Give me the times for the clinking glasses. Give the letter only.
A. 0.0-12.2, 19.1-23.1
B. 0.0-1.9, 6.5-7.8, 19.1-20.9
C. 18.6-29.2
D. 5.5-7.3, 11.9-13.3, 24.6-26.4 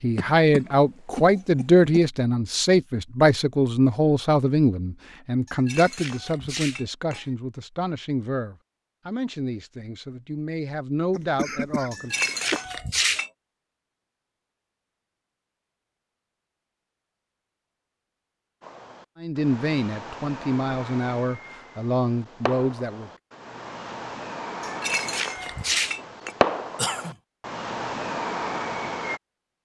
D.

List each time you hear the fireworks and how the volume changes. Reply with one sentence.
The fireworks can be heard from 18.6 to 29.2 s, getting louder.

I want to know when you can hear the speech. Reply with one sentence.
The speech can be heard from 0.0 to 12.2 s and from 19.1 to 23.1 s.